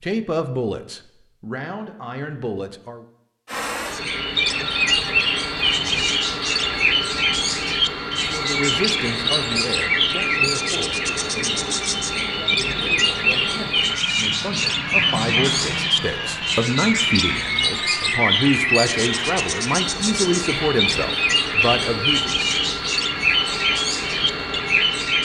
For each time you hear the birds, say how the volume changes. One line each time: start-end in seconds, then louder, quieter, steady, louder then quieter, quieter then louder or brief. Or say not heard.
3.9-25.1 steady.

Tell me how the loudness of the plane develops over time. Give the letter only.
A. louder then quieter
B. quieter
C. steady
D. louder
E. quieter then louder
C.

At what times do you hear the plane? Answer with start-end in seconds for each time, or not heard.
3.5-25.1.